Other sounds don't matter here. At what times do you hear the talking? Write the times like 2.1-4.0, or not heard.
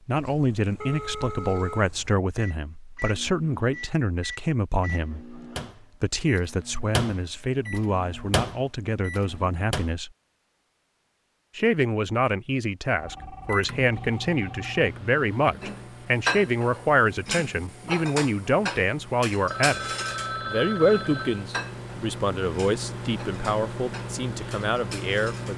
0.1-10.1, 11.6-19.9, 20.4-25.5.